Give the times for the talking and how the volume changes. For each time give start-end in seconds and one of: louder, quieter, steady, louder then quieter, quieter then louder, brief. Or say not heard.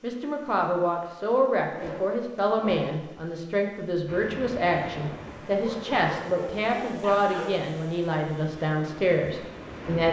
0.0-10.0 steady.